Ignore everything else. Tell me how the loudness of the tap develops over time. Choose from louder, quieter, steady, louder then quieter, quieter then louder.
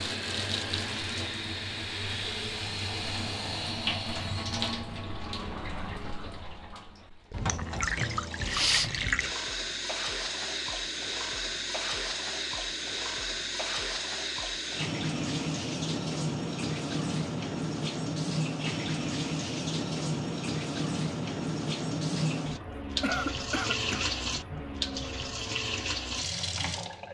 steady.